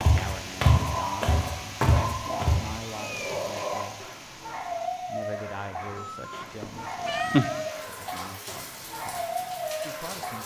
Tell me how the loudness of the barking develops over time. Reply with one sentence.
The loudness of the barking stays about the same.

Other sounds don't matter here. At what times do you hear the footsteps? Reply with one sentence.
The footsteps can be heard from 0.0 to 2.6 s.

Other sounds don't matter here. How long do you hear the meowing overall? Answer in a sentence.
You can hear the meowing for 2 seconds altogether.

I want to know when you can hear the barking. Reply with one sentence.
The barking can be heard from 0.0 to 10.4 s.